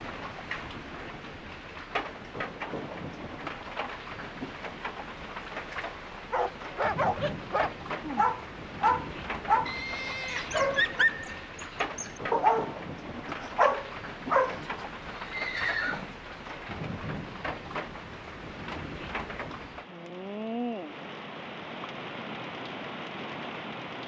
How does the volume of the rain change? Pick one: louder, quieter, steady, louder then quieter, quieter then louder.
steady.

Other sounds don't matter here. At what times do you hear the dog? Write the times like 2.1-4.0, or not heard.
6.3-14.7.